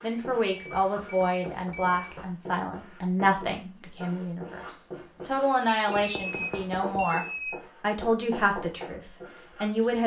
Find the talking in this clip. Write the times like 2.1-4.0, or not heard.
0.0-10.0.